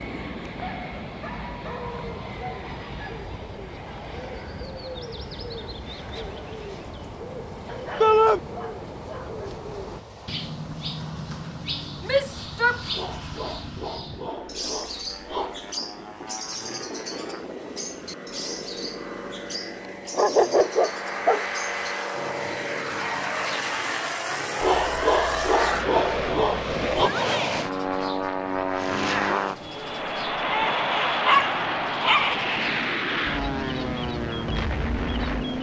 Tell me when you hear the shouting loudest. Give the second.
8 s.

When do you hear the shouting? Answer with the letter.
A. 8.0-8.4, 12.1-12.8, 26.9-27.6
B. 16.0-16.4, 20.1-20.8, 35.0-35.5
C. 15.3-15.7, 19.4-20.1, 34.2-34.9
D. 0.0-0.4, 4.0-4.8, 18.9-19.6
A.